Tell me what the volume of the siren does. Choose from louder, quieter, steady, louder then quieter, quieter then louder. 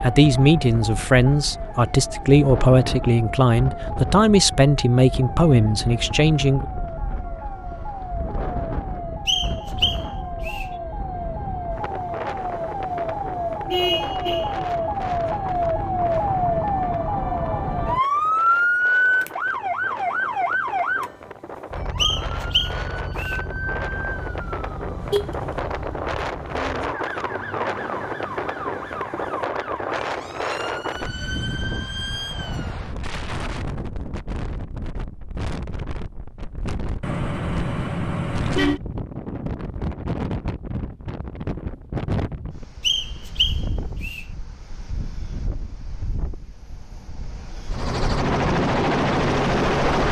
louder then quieter.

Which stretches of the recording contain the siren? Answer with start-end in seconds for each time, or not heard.
0.0-32.8.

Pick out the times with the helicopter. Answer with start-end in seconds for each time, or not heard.
47.7-50.0.